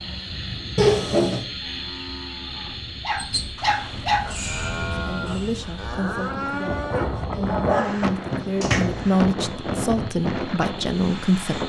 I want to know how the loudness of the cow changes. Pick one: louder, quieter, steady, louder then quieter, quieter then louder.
louder.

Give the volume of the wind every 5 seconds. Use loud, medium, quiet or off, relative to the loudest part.
medium, loud, loud.